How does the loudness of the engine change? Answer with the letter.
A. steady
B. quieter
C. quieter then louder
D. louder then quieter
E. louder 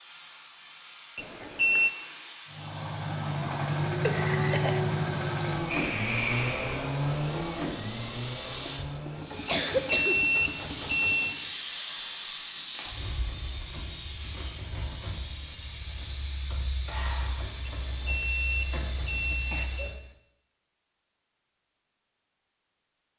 B.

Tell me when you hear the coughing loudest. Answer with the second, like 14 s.
10 s.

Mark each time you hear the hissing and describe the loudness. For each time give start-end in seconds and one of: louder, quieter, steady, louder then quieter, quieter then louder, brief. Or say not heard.
0.0-19.9 louder.